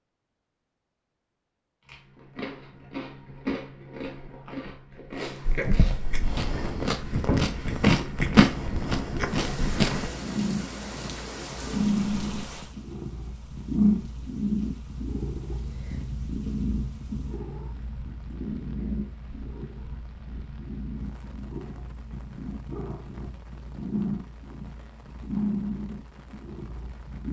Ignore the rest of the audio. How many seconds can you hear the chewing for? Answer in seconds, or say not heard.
8 s.